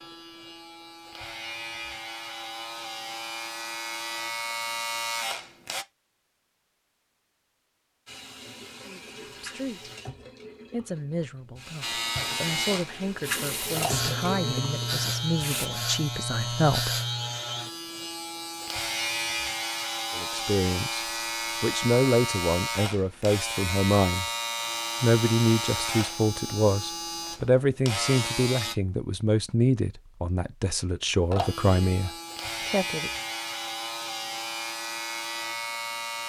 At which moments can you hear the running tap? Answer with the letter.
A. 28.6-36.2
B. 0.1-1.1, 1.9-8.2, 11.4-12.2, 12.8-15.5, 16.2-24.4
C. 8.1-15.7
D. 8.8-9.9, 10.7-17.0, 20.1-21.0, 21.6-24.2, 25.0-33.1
C.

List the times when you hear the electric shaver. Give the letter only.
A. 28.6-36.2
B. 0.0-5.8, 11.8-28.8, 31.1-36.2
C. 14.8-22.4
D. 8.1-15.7
B.